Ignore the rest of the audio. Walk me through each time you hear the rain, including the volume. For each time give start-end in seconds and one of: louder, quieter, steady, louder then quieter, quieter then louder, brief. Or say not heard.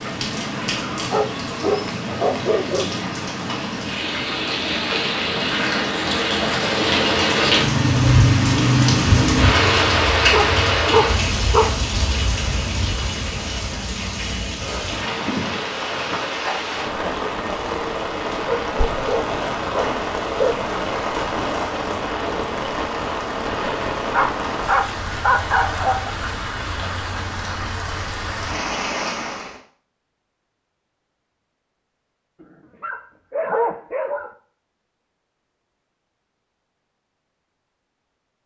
0.0-29.6 louder then quieter.